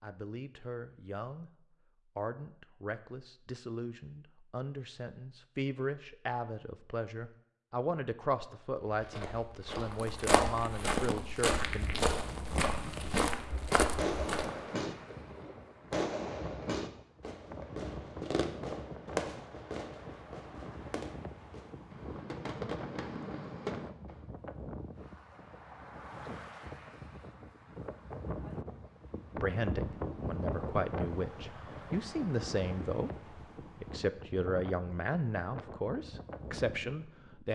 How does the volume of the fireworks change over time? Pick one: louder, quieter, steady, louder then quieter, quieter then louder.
quieter then louder.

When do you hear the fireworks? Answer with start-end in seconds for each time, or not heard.
13.3-24.2.